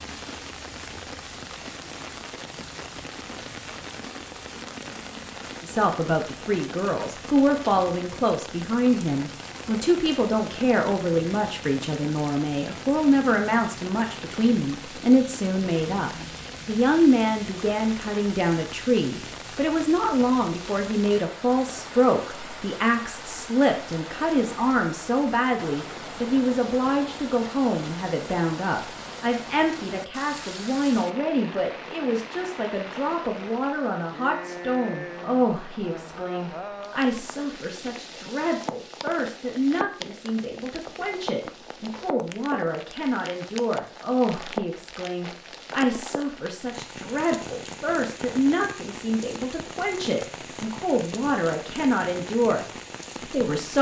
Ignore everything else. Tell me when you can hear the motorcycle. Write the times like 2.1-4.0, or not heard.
not heard.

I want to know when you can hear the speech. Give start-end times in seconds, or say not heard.
5.6-52.6, 53.2-53.7.